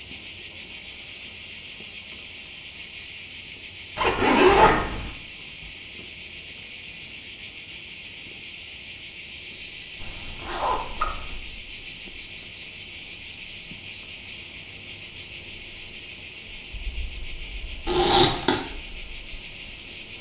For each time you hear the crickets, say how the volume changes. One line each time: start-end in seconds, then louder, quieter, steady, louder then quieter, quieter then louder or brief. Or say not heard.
0.0-20.1 steady.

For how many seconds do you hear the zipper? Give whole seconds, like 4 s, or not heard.
3 s.